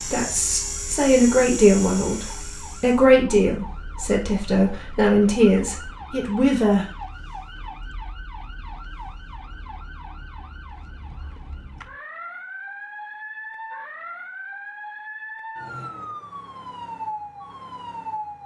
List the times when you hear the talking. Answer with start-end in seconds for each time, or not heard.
0.0-6.8.